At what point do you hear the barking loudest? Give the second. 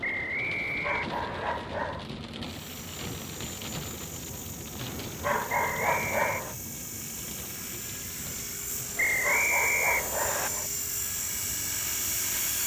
6 s.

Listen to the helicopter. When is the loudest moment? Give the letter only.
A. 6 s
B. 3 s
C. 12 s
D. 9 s
C.